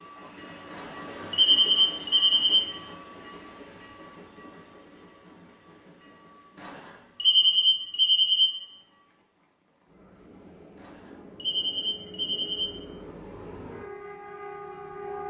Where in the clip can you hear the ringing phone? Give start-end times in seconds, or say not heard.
0.7-2.6, 6.5-8.5, 10.8-12.7.